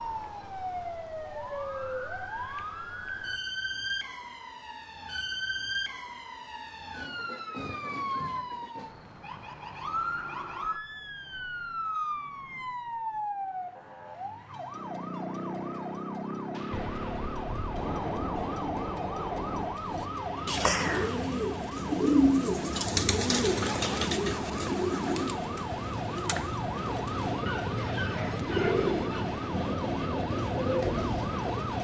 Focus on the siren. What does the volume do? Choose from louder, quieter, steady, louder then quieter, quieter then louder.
steady.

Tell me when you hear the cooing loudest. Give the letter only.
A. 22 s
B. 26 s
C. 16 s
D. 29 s
A.